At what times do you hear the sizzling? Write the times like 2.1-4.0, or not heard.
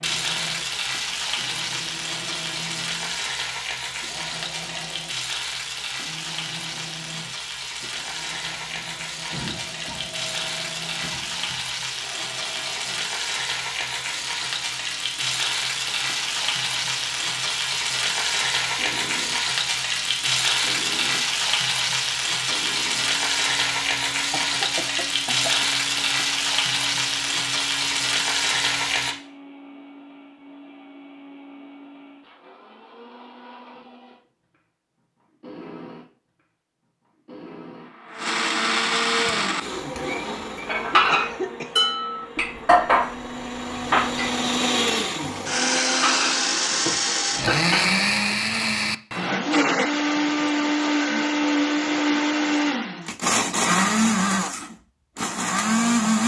0.0-29.1.